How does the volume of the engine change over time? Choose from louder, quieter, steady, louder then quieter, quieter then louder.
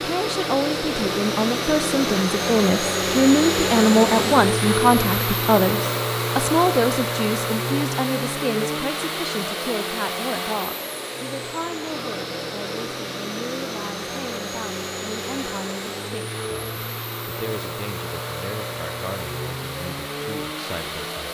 quieter.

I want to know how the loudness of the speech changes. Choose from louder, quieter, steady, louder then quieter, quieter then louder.
quieter.